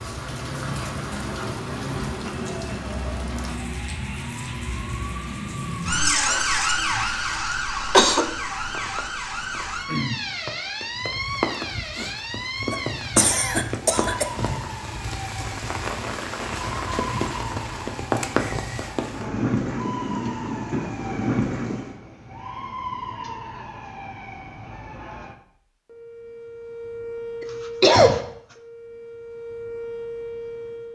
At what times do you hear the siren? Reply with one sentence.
The siren can be heard from 0.0 to 30.8 s.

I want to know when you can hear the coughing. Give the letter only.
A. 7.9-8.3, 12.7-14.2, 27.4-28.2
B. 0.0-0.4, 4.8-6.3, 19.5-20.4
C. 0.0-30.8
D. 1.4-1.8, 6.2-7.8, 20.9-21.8
A.